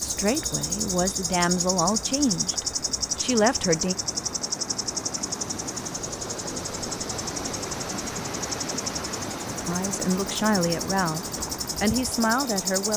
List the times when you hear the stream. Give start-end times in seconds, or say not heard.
0.0-12.9.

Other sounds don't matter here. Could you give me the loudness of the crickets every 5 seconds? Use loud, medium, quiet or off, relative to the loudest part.
loud, medium, loud.